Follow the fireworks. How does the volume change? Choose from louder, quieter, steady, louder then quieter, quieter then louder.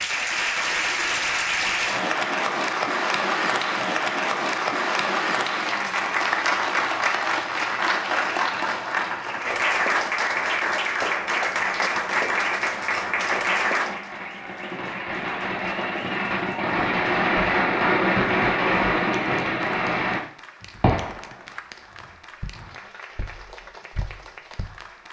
louder then quieter.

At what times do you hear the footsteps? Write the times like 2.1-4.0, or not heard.
22.4-24.9.